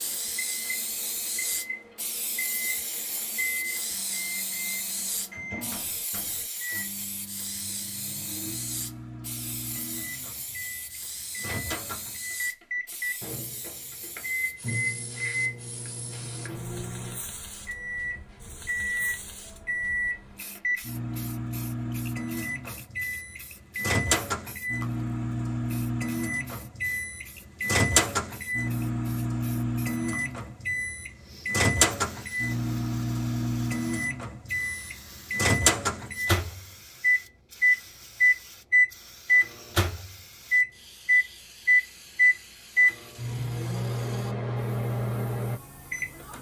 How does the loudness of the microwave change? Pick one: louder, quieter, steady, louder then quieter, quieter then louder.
louder.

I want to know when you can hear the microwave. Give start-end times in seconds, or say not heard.
0.0-46.3.